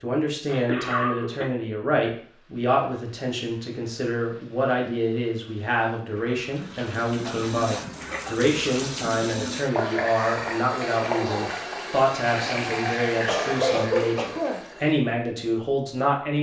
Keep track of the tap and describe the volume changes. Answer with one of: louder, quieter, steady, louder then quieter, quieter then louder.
louder.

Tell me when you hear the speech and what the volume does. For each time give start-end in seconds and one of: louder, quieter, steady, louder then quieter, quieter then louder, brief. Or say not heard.
0.0-16.3 steady.